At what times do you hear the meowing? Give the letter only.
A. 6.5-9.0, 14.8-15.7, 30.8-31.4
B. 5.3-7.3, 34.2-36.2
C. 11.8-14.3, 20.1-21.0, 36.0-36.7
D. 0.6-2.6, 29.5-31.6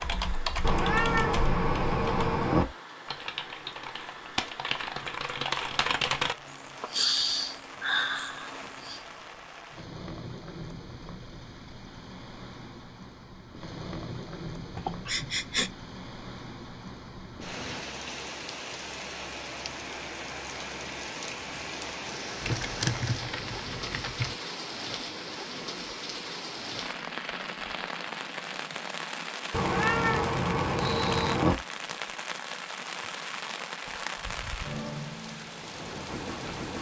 D.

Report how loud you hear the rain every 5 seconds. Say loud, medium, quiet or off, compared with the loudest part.
medium, medium, medium, loud, loud, loud, loud, loud.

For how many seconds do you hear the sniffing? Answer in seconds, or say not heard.
4 s.